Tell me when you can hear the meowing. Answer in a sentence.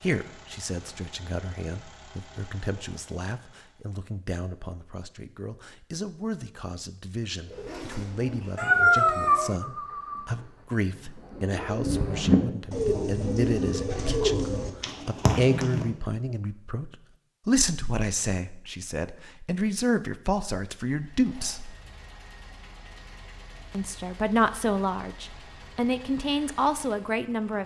The meowing can be heard from 8.6 to 9.6 s.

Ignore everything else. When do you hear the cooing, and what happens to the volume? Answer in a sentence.
You can hear the cooing from 7.5 to 15.8 s, getting louder.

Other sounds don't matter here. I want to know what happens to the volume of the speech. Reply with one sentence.
The loudness of the speech goes up.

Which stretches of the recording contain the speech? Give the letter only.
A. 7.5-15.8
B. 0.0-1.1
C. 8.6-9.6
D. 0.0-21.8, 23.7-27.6
D.